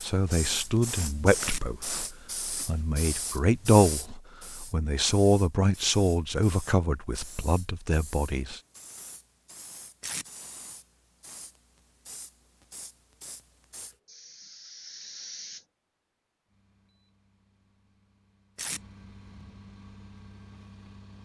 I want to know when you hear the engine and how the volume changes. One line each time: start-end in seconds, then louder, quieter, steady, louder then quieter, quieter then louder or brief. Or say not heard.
16.4-21.1 louder.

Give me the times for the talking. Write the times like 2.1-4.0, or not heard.
0.0-8.6.